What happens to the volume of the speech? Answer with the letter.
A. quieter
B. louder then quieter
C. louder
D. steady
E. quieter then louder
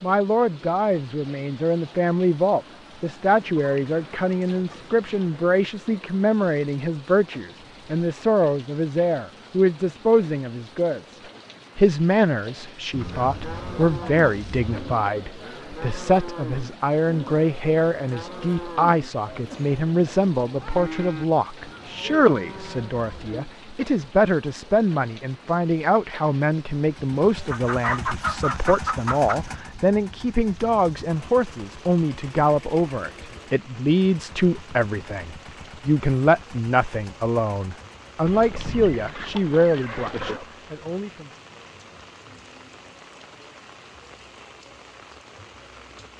D.